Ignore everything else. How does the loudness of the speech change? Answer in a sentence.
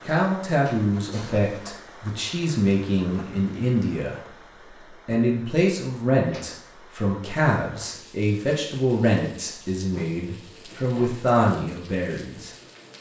The volume of the speech stays about the same.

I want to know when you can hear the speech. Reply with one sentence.
The speech can be heard from 0.1 to 4.3 s and from 5.0 to 12.5 s.